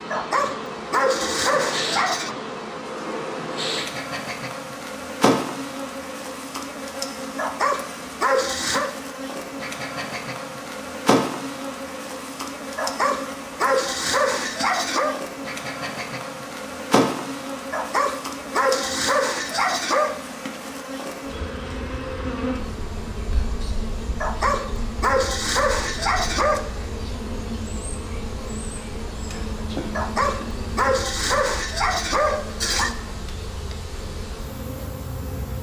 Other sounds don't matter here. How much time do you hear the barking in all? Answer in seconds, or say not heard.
14 s.